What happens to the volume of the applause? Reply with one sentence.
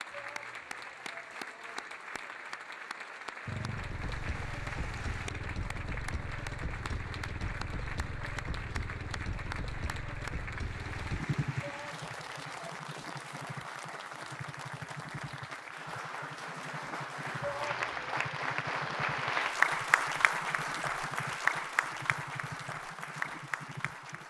The loudness of the applause goes up.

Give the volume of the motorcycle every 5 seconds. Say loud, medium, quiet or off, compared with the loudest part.
loud, loud, loud, medium, medium.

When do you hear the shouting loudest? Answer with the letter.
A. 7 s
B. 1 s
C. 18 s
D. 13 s
C.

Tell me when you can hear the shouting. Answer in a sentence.
The shouting can be heard from 0.1 to 2.7 s, from 11.6 to 12.8 s and from 17.4 to 18.1 s.